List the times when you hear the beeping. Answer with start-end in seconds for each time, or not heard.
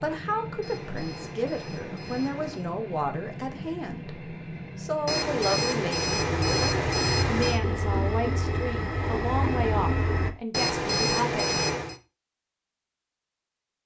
0.6-2.6, 5.0-7.6, 10.5-12.0.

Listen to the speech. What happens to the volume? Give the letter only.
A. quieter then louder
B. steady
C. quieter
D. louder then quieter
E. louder
B.